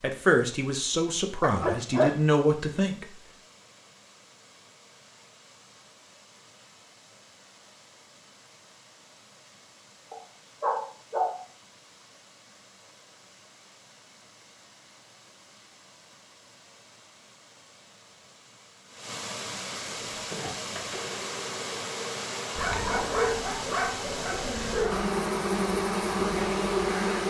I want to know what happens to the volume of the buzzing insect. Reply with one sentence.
The loudness of the buzzing insect goes up.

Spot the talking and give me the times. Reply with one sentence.
You can hear the talking from 0.0 to 3.0 s.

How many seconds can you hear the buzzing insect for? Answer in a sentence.
You can hear the buzzing insect for 7 seconds altogether.